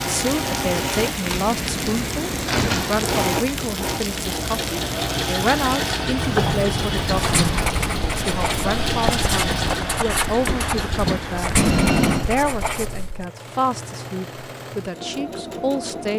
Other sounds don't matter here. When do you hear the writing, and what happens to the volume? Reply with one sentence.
The writing can be heard from 7.2 to 13.2 s, at a steady volume.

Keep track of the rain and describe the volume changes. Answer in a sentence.
The loudness of the rain stays about the same.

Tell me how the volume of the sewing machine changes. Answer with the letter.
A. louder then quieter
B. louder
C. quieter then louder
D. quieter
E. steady
D.